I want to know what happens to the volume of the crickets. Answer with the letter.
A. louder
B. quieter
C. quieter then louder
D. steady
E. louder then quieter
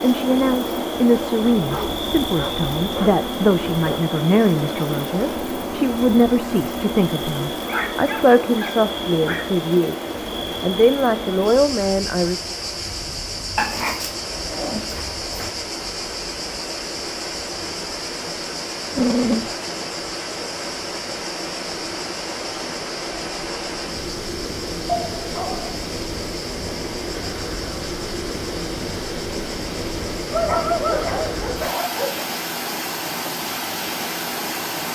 B.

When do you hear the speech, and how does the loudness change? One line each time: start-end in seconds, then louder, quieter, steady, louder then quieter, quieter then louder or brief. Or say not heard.
0.0-12.4 steady.